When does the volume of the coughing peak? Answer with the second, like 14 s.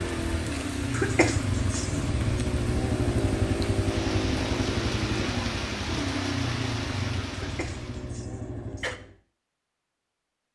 1 s.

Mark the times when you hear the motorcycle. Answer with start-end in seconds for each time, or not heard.
0.0-9.2.